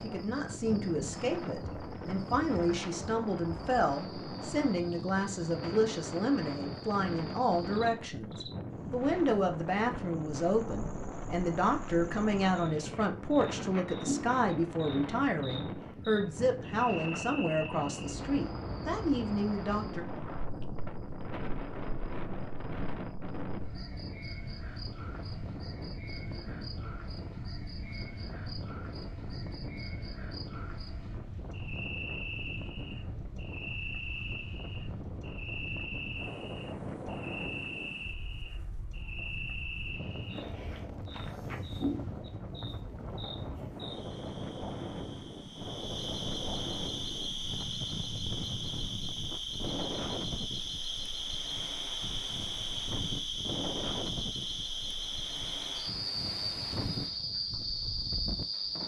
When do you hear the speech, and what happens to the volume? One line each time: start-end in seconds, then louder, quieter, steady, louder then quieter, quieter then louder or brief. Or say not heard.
0.0-20.1 steady.